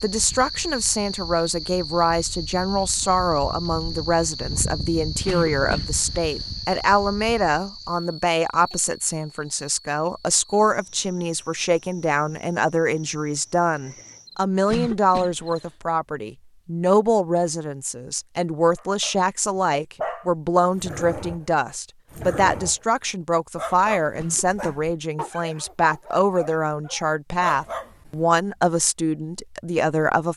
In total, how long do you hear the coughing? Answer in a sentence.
You can hear the coughing for 3 seconds altogether.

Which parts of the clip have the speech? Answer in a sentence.
The speech can be heard from 0.0 to 30.3 s.